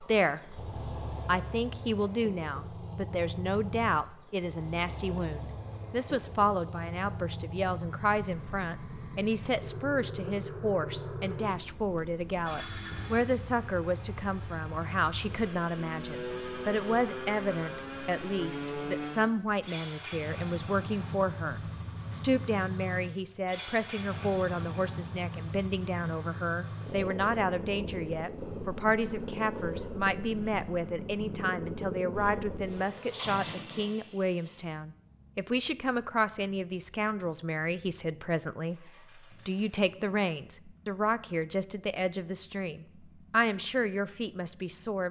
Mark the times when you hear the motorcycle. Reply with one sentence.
You can hear the motorcycle from 0.0 to 45.0 s.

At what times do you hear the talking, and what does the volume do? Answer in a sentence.
The talking can be heard from 0.0 to 45.0 s, at a steady volume.